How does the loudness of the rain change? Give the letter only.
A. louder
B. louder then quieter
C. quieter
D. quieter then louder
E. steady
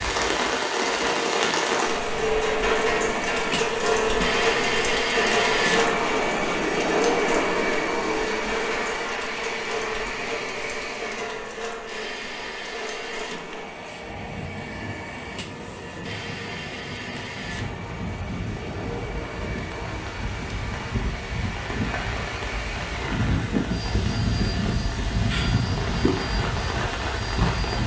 D.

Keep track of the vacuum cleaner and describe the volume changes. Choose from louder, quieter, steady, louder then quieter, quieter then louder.
quieter.